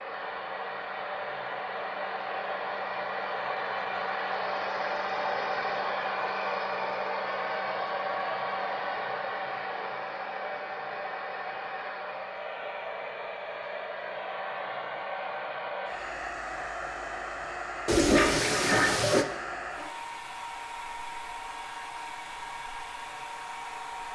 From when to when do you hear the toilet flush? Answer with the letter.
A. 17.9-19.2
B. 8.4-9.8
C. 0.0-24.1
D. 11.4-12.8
A.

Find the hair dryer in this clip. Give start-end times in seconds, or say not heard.
0.0-24.1.